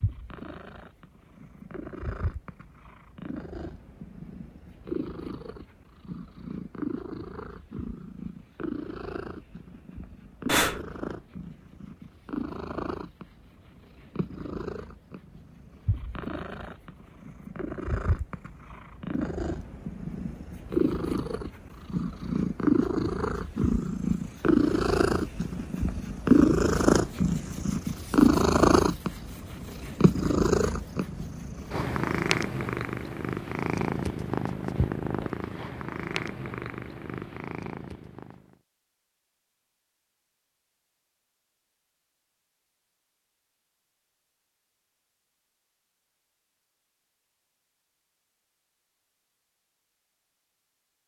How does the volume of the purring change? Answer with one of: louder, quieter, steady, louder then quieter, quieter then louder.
louder then quieter.